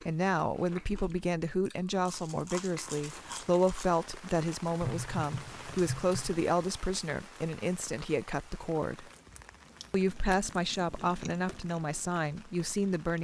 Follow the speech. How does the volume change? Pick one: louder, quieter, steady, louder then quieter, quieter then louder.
steady.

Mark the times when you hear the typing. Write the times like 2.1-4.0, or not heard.
4.8-6.3.